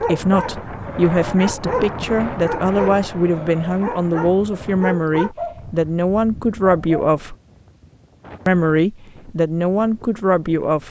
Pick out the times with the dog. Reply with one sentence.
The dog can be heard from 0.0 to 7.0 s.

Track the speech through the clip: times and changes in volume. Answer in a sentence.
The speech can be heard from 0.0 to 7.3 s, at a steady volume; and briefly from 8.4 to 10.8 s.